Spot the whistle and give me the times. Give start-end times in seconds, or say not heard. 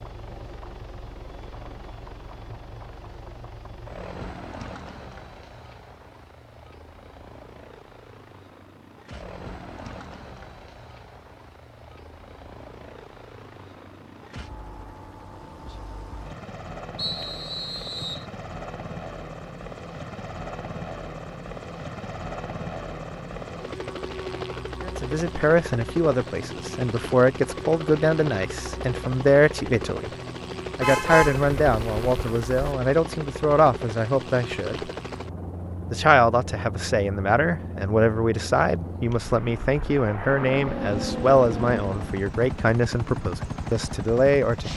16.9-18.2.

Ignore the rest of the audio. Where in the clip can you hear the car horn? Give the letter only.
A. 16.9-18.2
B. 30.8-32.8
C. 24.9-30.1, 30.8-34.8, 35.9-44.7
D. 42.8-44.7
B.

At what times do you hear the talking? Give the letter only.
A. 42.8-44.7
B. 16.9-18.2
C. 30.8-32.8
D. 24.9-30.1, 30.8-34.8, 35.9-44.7
D.